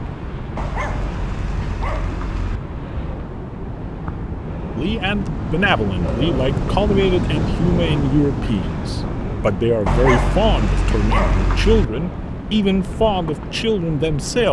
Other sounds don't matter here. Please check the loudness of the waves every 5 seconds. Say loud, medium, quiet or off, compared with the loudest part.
medium, loud, medium.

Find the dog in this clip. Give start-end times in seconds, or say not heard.
0.6-2.6, 9.8-11.8.